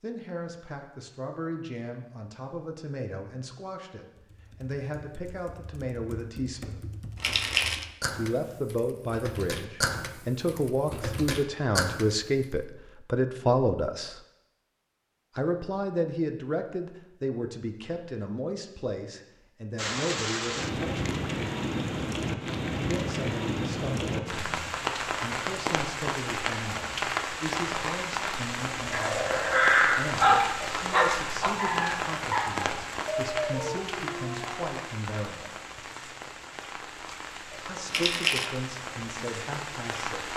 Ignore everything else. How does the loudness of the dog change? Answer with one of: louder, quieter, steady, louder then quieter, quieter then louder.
quieter.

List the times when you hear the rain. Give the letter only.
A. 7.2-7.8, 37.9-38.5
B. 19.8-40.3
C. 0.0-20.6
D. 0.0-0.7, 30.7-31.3
B.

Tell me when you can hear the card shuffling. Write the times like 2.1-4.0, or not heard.
7.2-7.8, 37.9-38.5.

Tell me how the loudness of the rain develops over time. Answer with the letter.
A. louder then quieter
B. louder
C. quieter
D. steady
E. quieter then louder
C.